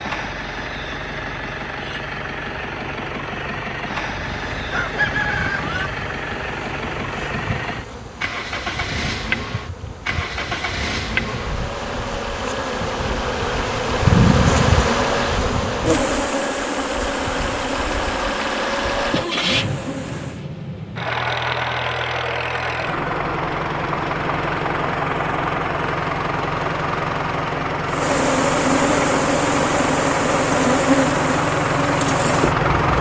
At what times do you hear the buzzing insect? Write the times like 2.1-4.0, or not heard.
4.1-20.4, 27.9-32.7.